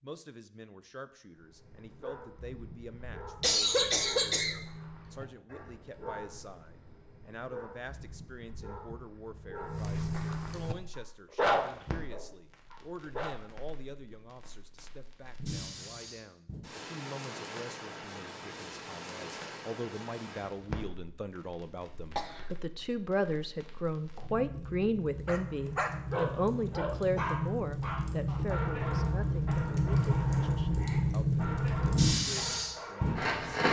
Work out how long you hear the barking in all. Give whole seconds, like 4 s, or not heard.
20 s.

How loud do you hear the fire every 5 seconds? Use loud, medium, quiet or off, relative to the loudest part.
off, off, quiet, quiet, quiet, medium, loud.